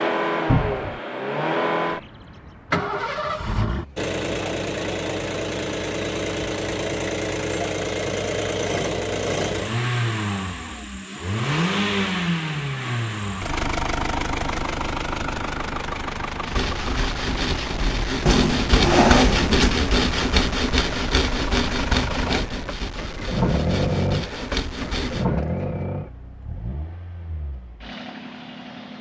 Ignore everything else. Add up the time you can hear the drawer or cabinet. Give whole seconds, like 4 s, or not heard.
2 s.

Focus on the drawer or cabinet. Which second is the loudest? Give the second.
19 s.